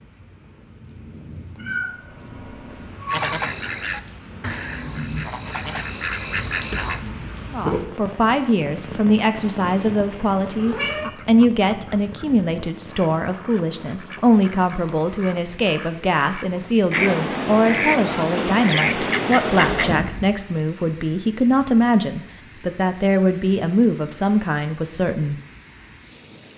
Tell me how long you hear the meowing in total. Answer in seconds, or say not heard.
3 s.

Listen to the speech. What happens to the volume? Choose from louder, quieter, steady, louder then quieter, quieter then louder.
steady.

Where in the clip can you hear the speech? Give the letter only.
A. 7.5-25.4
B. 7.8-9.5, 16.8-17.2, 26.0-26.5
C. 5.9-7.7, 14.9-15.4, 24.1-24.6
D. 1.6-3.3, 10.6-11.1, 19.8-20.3
A.